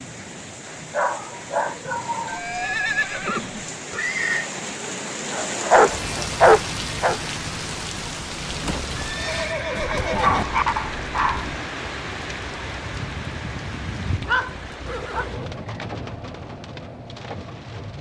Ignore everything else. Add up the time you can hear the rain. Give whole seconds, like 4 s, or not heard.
18 s.